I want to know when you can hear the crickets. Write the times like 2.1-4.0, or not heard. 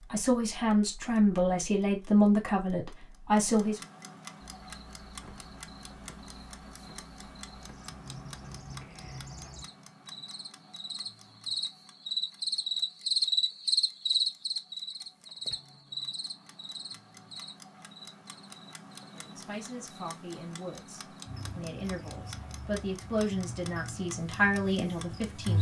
4.4-25.5.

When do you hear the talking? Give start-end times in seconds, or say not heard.
0.0-3.8, 19.1-25.5.